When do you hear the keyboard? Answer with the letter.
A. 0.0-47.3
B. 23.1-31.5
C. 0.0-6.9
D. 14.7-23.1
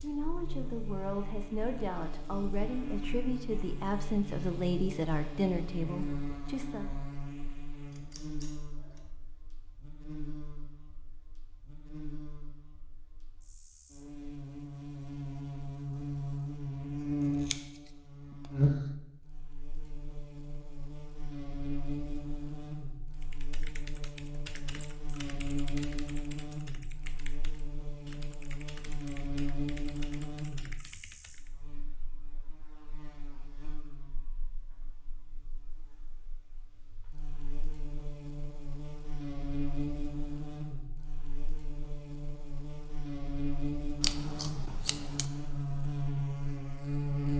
B.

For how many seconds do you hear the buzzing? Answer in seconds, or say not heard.
47 s.